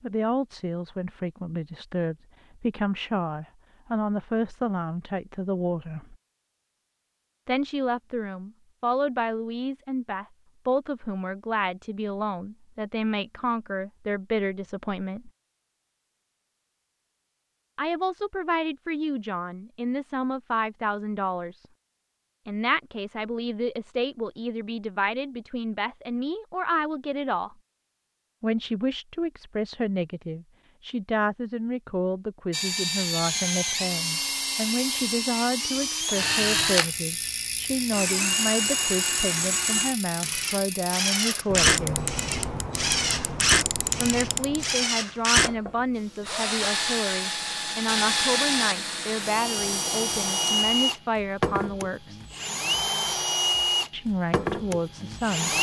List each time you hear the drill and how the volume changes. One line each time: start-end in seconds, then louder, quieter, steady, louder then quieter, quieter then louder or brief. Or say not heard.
32.5-55.5 steady.